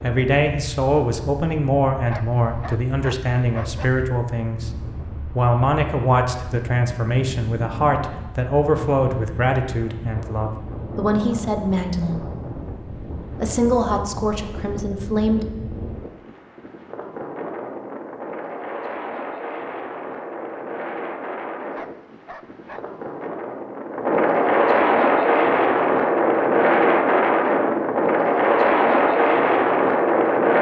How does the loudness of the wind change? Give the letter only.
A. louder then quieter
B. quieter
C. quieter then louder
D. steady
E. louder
E.